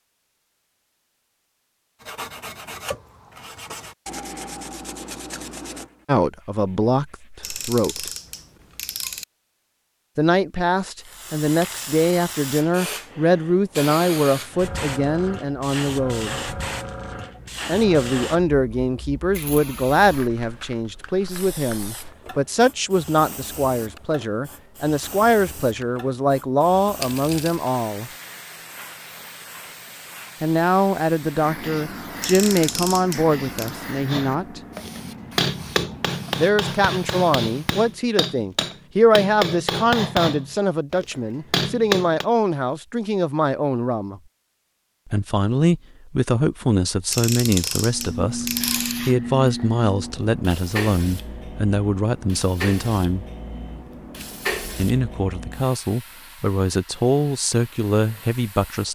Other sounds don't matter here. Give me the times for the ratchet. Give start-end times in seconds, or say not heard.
7.4-9.2, 32.2-33.8, 47.1-49.0.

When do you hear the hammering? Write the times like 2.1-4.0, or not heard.
34.0-42.2.